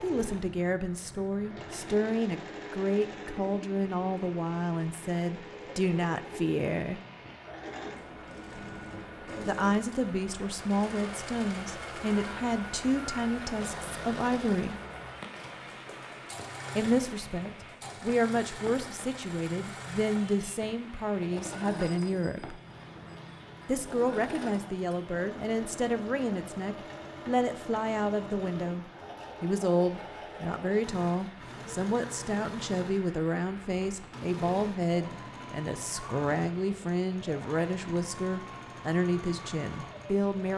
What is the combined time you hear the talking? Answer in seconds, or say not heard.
35 s.